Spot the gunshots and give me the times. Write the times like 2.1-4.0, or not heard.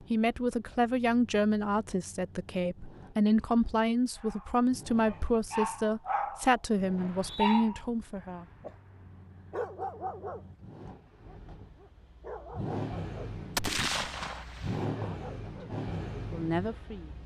13.6-14.8.